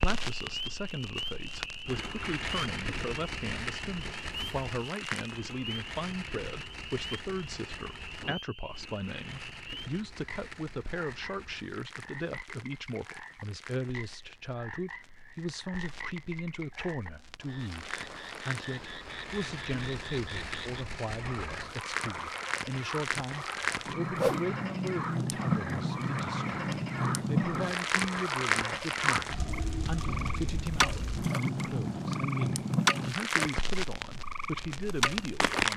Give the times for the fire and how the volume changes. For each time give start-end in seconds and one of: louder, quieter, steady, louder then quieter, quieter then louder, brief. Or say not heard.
0.0-35.7 quieter then louder.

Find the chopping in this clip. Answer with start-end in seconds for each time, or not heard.
not heard.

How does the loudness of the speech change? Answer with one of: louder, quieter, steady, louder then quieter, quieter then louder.
steady.